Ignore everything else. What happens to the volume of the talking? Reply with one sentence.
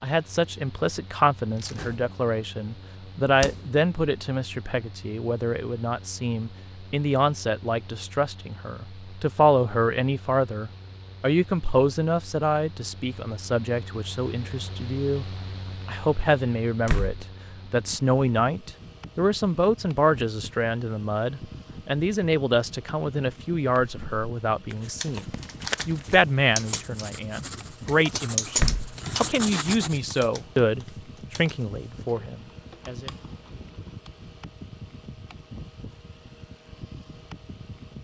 The loudness of the talking stays about the same.